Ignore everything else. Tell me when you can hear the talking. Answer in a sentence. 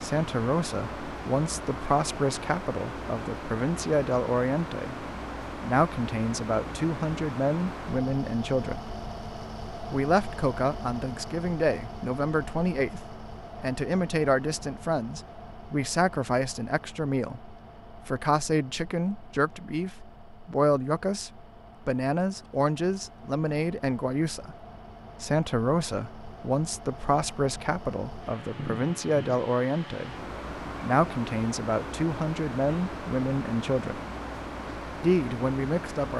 The talking can be heard from 0.0 to 5.0 s, from 5.6 to 8.8 s, from 9.9 to 24.6 s, from 25.2 to 30.1 s, from 30.8 to 34.0 s and from 35.0 to 36.1 s.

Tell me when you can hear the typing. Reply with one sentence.
You can't hear the typing here.